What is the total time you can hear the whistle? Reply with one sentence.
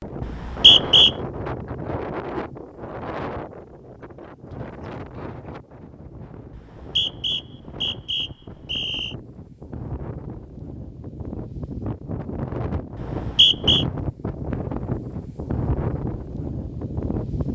The whistle can be heard for 4 seconds in total.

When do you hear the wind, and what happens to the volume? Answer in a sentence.
You can hear the wind from 0.0 to 17.4 s, getting quieter then louder.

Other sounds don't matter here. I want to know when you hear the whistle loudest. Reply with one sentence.
The volume of the whistle peaks at 1 second.